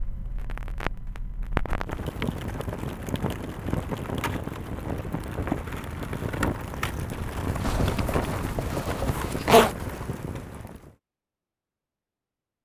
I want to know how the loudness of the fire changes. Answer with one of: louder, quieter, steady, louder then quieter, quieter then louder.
steady.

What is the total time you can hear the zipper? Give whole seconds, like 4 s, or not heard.
2 s.